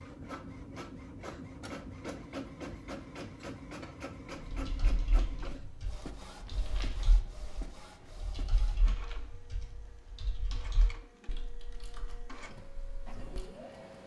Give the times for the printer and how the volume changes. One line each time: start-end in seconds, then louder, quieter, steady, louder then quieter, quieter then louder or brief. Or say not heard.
0.0-14.0 quieter.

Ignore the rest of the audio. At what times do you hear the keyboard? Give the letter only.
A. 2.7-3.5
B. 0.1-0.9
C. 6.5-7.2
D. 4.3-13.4
D.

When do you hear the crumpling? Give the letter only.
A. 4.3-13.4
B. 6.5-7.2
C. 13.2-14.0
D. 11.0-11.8
B.